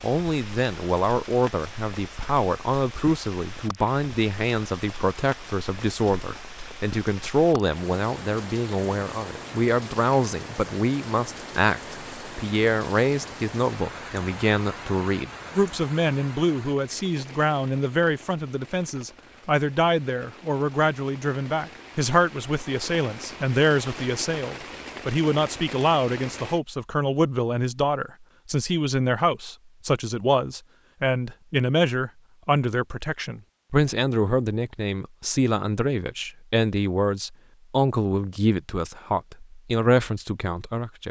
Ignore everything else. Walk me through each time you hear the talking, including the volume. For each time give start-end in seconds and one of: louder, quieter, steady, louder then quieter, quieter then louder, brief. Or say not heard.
0.0-41.0 steady.